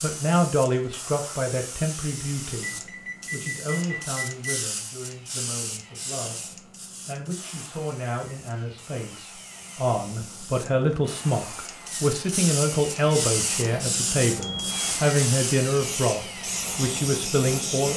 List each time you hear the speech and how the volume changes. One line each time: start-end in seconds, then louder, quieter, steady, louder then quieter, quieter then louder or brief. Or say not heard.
0.0-17.9 quieter then louder.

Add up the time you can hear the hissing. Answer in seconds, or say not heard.
18 s.